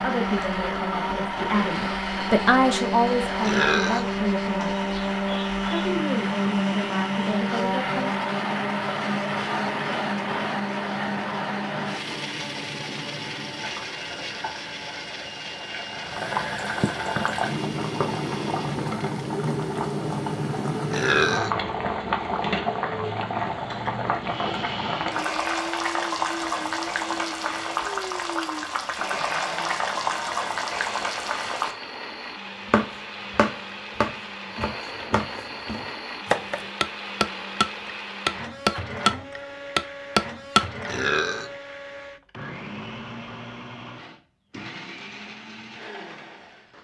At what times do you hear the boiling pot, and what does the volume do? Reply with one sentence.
You can hear the boiling pot from 0.0 to 31.8 s, getting louder.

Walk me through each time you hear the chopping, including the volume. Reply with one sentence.
The chopping can be heard from 32.6 to 40.6 s, getting quieter then louder.